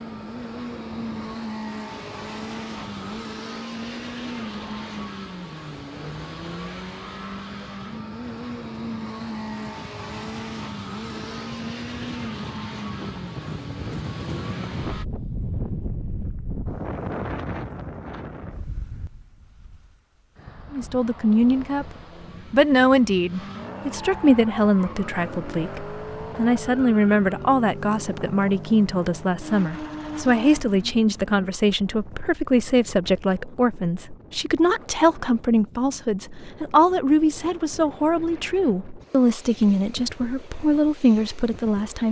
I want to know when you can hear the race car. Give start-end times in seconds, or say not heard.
0.0-15.1, 21.6-31.5.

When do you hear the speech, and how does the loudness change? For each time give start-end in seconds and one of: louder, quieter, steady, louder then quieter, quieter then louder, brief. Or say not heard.
20.7-21.9 brief
22.5-42.0 steady.